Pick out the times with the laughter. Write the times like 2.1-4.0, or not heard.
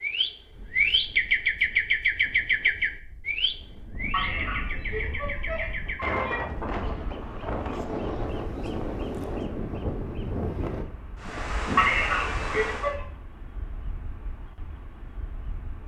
4.1-6.4, 11.8-13.1.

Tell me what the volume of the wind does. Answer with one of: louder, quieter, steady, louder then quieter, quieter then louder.
louder.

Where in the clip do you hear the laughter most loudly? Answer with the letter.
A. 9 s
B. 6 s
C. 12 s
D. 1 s
C.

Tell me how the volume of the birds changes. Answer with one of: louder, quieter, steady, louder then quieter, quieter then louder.
quieter.